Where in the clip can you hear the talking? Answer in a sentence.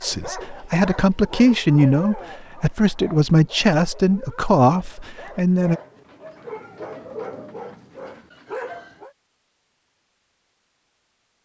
You can hear the talking from 0.0 to 5.8 s.